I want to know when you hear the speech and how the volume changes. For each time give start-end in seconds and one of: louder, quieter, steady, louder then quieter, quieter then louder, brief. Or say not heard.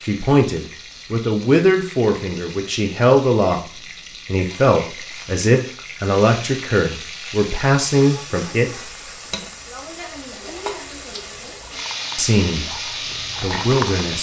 0.0-8.9 steady
12.2-14.1 brief.